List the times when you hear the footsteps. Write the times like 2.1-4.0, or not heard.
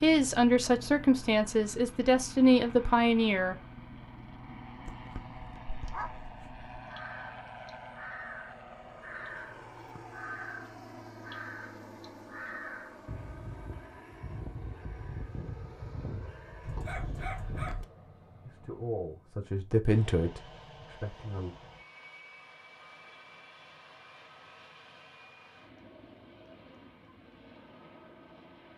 not heard.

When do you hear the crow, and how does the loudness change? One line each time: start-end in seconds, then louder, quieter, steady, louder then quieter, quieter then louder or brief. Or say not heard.
6.8-17.8 steady.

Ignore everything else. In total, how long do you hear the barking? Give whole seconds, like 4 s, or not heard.
3 s.